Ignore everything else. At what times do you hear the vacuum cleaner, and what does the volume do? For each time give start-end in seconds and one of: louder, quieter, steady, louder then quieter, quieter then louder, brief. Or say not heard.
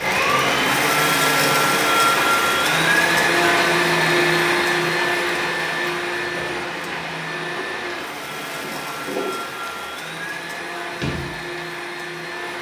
0.0-12.5 quieter.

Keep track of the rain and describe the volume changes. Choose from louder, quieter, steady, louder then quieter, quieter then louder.
quieter.